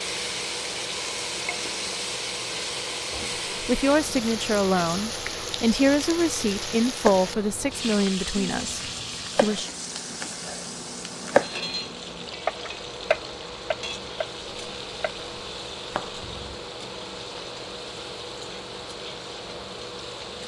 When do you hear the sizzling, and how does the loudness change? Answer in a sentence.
The sizzling can be heard from 0.0 to 20.4 s, getting quieter.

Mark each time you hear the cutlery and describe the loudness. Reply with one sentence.
You can't hear the cutlery here.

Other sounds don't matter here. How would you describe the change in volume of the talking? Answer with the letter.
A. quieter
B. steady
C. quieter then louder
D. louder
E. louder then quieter
A.